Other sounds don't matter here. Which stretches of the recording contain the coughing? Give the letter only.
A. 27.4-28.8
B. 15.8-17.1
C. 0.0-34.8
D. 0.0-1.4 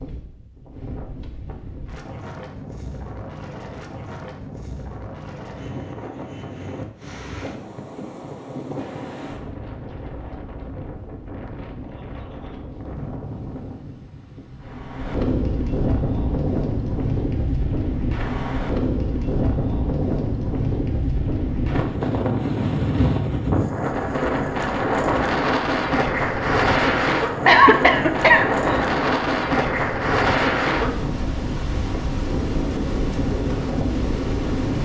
A.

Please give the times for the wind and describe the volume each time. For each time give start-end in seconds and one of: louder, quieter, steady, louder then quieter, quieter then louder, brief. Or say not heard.
0.0-34.8 louder.